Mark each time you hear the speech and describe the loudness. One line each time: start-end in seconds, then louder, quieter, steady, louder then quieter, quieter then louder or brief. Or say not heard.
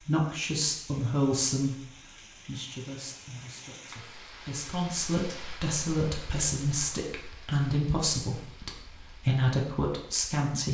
0.1-10.6 quieter then louder.